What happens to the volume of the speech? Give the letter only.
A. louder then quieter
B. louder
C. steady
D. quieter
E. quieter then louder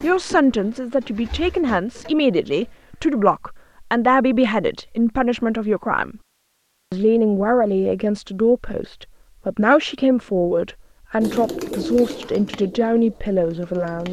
C.